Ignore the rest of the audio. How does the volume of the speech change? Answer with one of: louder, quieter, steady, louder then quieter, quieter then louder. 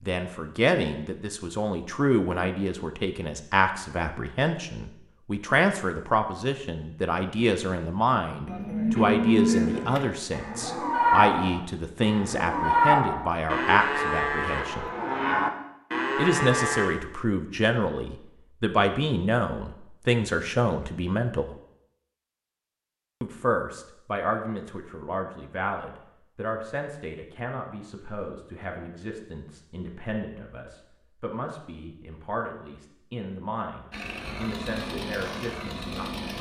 quieter.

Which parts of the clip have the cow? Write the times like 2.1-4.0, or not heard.
8.4-16.9.